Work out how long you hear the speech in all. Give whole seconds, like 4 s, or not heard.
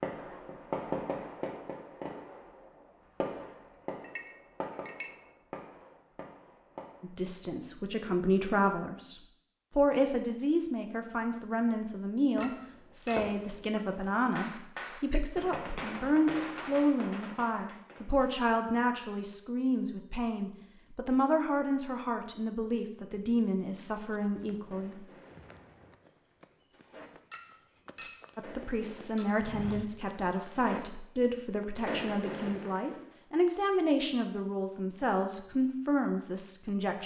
27 s.